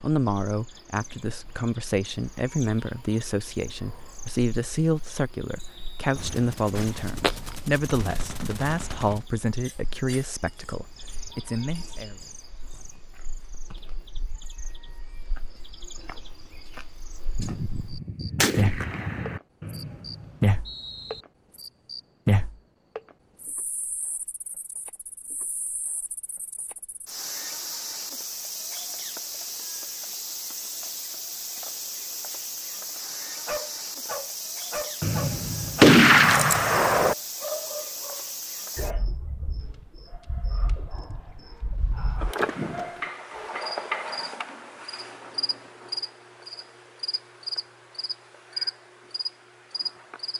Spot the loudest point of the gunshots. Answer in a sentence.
The loudest moment of the gunshots is at 36 seconds.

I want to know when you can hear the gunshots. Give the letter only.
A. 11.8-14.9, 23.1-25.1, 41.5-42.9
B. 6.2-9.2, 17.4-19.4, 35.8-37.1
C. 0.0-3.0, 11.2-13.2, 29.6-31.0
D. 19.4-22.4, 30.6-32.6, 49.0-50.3
B.